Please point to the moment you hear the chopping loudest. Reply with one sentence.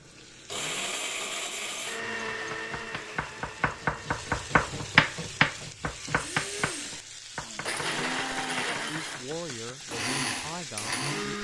The volume of the chopping peaks at 5 seconds.